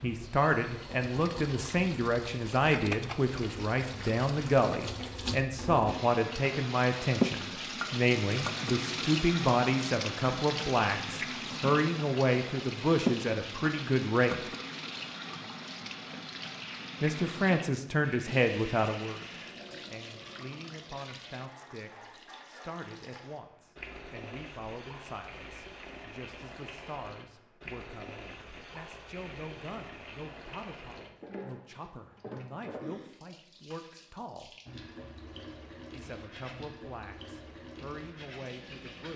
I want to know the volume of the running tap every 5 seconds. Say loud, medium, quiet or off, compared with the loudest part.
medium, loud, loud, medium, quiet, quiet, quiet, quiet.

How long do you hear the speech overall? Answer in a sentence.
You can hear the speech for 35 seconds altogether.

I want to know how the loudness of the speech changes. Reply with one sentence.
The loudness of the speech goes down.